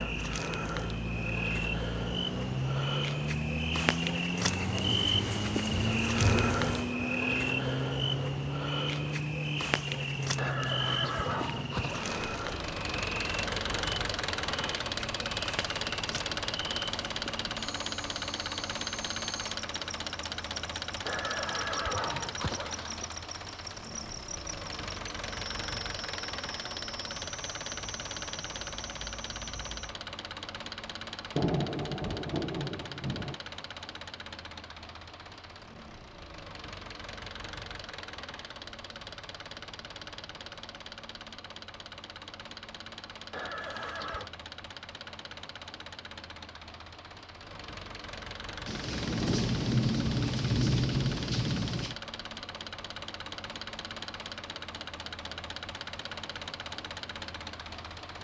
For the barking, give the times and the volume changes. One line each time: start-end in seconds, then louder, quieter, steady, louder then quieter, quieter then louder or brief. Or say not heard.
not heard.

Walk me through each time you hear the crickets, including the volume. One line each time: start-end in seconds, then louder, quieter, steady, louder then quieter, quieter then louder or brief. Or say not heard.
0.0-29.9 quieter.